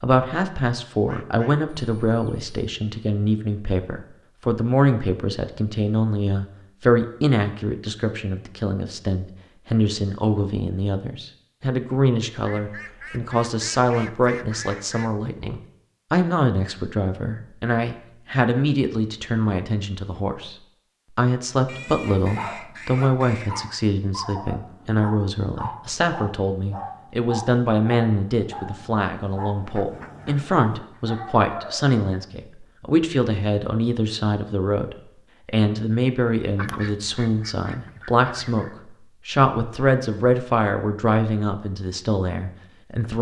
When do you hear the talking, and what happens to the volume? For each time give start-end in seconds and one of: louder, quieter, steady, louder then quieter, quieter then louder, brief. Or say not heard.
0.0-20.6 steady
21.1-43.1 steady.